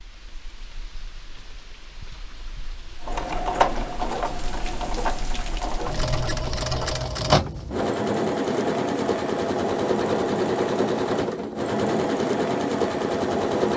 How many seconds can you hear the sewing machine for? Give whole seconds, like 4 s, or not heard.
11 s.